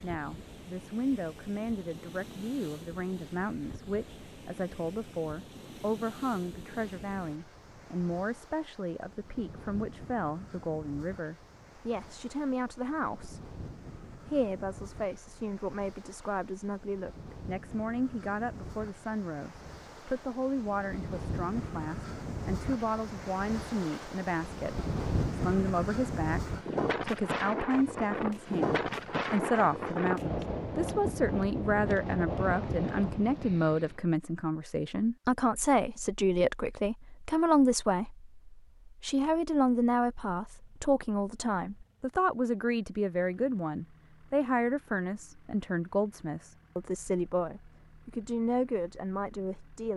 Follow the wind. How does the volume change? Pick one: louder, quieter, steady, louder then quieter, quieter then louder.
louder.